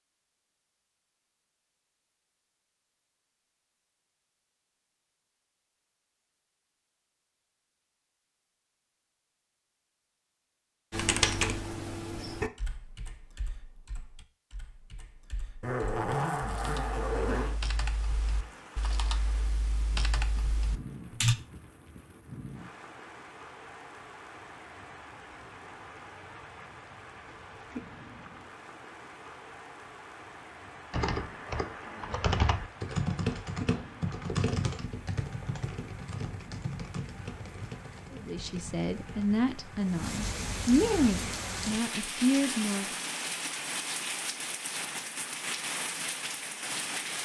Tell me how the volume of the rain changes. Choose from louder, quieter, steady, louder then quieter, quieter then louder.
louder.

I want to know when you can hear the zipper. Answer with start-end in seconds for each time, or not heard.
15.6-17.6.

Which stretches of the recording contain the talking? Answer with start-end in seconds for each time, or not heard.
38.1-42.9.